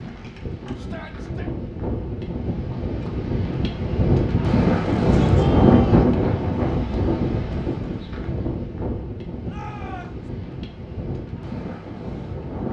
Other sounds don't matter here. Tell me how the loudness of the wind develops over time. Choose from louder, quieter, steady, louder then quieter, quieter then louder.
louder then quieter.